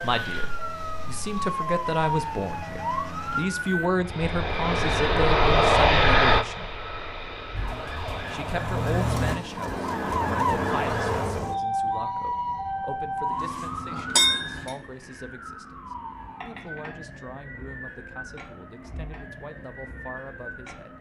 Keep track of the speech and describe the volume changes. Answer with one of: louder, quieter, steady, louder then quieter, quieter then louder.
quieter.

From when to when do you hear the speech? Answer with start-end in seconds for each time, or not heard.
0.0-6.7, 8.3-20.9.